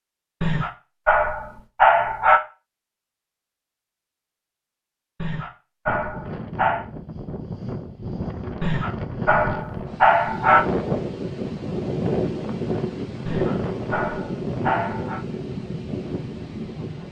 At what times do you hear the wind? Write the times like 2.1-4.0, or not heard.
5.8-17.0.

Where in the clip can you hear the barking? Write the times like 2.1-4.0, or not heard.
0.4-2.4, 5.2-6.8, 8.6-10.7, 13.2-15.2.